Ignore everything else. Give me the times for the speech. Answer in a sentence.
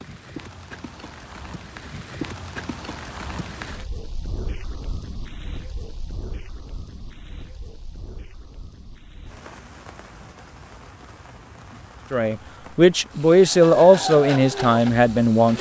You can hear the speech from 12.1 to 15.5 s.